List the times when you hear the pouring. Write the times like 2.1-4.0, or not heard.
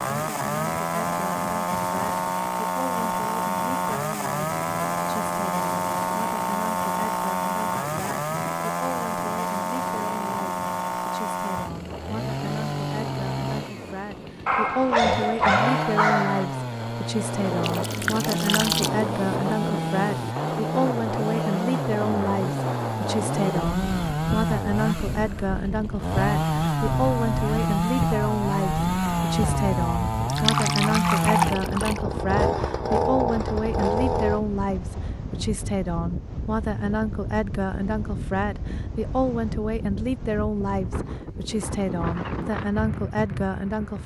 17.6-18.9, 30.3-32.0.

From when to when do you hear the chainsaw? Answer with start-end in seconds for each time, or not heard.
0.0-34.4.